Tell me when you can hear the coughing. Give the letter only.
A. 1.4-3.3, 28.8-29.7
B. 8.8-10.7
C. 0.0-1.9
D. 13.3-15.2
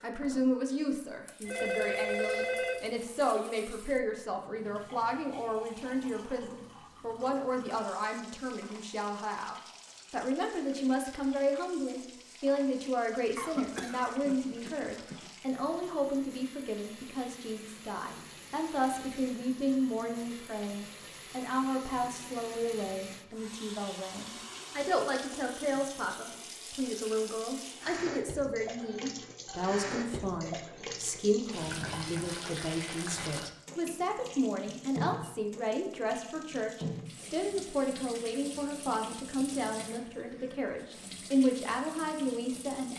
D.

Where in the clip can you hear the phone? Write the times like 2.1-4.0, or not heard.
1.4-3.3, 28.8-29.7.